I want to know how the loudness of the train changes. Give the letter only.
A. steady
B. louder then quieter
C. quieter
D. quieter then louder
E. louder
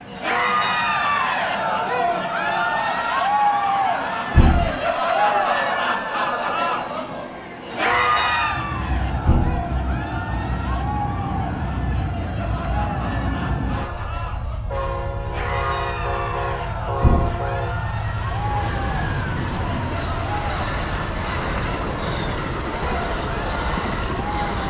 E.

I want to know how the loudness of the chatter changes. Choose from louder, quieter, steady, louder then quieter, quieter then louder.
quieter.